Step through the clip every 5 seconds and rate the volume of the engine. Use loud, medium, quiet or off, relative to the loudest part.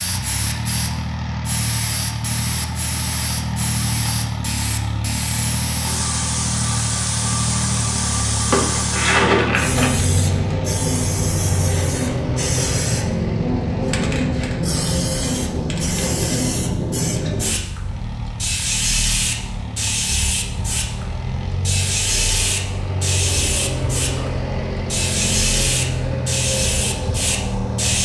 loud, loud, loud, medium, loud, loud.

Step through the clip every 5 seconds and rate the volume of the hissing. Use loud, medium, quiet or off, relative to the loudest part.
medium, loud, loud, loud, loud, loud.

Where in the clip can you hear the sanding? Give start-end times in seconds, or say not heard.
not heard.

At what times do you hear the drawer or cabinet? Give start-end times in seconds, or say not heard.
8.5-9.9.